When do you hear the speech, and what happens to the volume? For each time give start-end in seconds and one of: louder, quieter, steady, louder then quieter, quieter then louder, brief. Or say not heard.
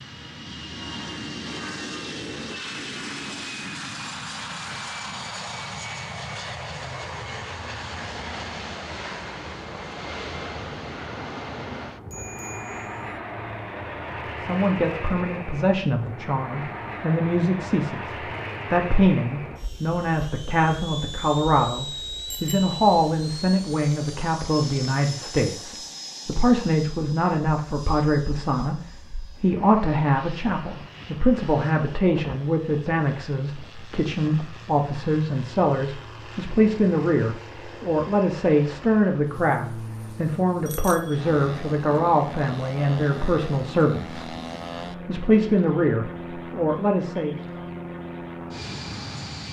14.3-44.4 steady
45.0-47.4 brief.